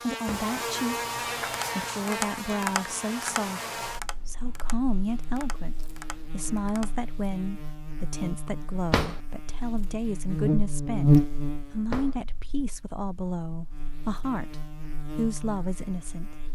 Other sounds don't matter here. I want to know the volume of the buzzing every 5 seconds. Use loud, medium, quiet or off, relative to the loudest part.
medium, quiet, loud, quiet.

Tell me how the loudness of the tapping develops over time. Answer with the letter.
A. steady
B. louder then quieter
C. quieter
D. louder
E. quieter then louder
C.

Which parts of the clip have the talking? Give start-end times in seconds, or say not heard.
0.0-1.1, 1.8-14.6, 15.2-16.3.